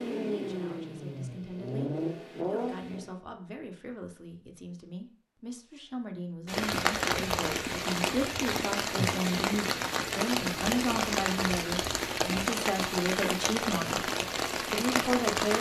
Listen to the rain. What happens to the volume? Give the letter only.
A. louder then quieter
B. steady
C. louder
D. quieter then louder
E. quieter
B.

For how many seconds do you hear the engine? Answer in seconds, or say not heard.
3 s.